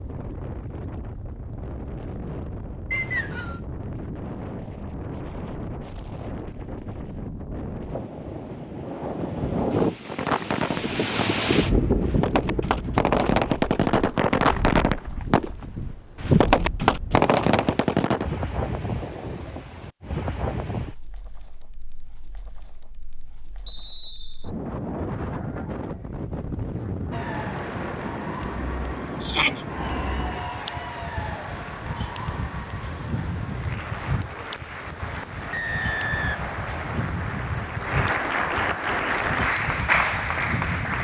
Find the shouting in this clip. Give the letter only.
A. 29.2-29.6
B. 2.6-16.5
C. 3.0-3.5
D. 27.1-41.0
A.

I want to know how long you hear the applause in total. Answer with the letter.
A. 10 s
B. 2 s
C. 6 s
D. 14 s
D.